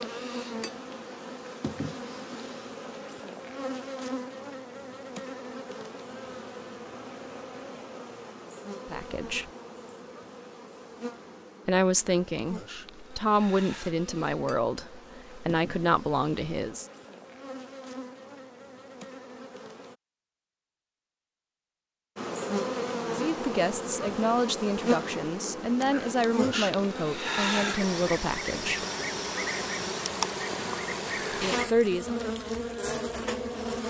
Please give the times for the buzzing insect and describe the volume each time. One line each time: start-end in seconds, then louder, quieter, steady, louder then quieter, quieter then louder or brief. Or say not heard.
0.0-19.9 quieter
22.1-33.8 steady.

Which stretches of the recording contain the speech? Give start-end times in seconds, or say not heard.
8.8-9.5, 11.7-16.9, 23.1-28.9, 31.4-32.1.